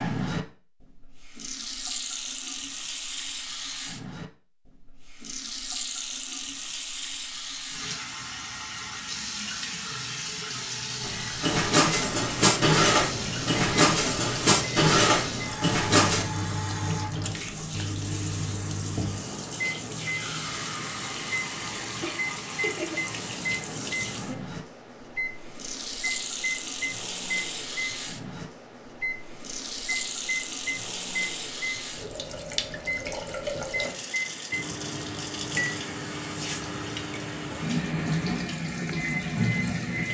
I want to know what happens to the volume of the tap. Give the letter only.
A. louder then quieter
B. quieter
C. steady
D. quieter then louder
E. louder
C.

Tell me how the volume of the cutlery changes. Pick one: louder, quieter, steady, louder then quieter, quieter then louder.
steady.